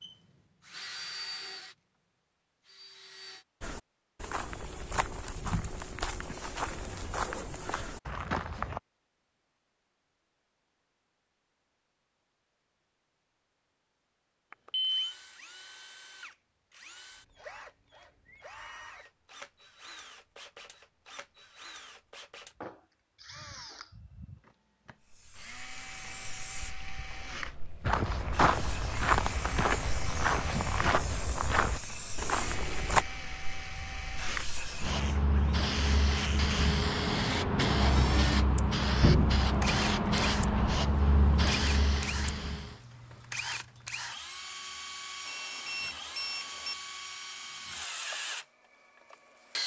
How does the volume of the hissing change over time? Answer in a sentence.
The loudness of the hissing goes up.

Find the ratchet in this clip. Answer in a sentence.
You can't hear the ratchet here.